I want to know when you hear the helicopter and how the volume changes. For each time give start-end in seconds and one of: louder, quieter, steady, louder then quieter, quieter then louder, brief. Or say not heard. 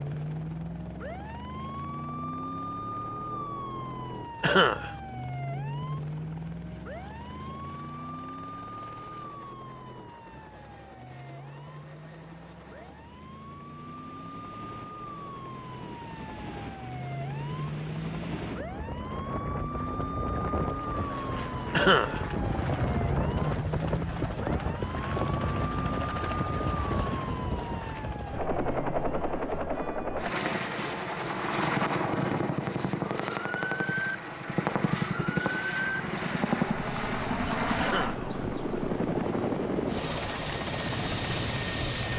0.0-42.1 louder.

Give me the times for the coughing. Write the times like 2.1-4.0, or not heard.
4.4-4.9, 21.7-22.2, 37.8-38.2.